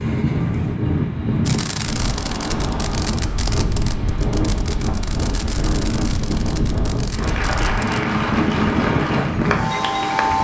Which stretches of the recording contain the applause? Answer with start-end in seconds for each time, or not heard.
7.1-10.3.